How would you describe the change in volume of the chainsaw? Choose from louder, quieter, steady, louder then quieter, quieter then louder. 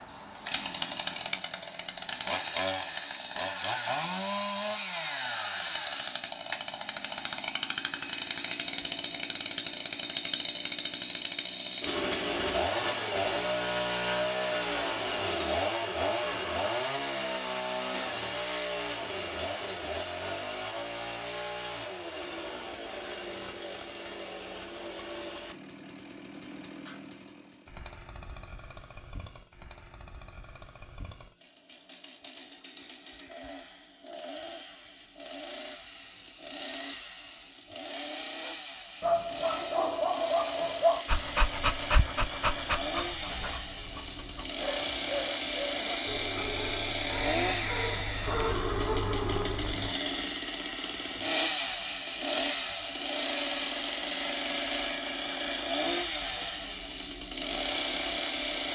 quieter then louder.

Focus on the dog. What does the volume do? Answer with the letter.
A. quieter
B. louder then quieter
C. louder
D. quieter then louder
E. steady
D.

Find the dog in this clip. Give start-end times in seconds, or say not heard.
38.4-50.0.